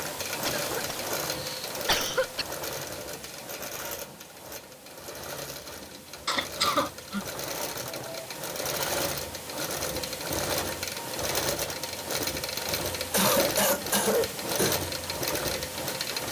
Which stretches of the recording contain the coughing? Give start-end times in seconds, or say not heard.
0.5-2.5, 6.2-8.2, 13.1-14.8.